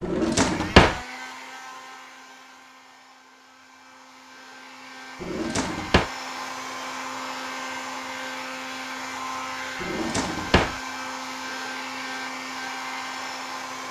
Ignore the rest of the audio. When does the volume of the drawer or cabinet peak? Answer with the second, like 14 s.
1 s.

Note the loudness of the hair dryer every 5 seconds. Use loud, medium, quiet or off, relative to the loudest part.
medium, loud, loud.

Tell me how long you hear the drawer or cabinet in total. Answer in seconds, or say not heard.
3 s.